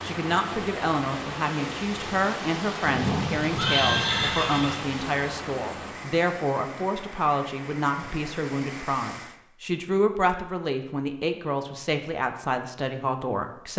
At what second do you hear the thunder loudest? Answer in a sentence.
The loudest moment of the thunder is at 3 seconds.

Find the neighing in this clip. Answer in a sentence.
You can hear the neighing from 3.5 to 4.8 s.